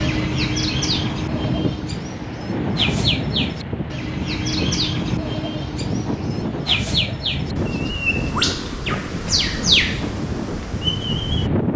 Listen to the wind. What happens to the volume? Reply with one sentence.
The volume of the wind stays about the same.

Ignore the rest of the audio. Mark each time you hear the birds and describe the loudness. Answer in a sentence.
You can hear the birds from 0.0 to 11.5 s, at a steady volume.